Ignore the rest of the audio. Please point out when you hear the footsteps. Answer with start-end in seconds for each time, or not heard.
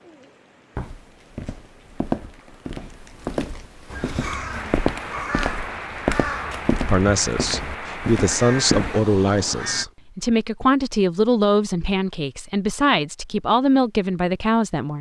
0.8-8.9.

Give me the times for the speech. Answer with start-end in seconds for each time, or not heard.
6.8-14.9.